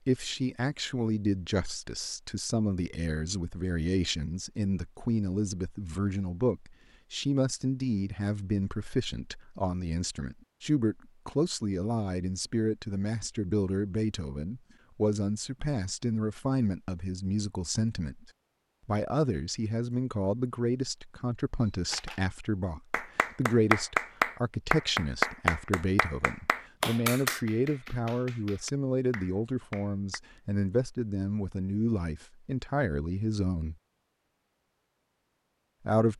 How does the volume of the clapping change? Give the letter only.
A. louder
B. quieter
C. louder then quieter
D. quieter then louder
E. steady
B.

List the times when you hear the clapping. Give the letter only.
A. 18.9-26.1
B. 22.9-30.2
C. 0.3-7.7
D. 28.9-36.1
B.